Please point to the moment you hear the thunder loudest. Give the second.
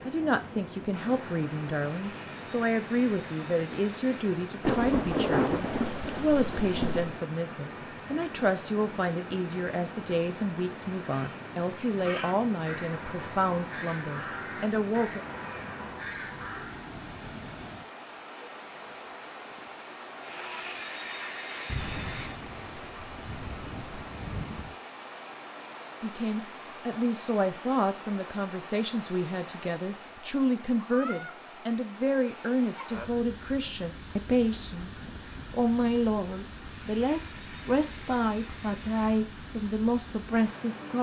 5 s.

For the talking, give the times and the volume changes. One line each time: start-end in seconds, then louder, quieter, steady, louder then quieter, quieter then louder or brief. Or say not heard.
0.1-15.2 steady
26.0-40.9 steady.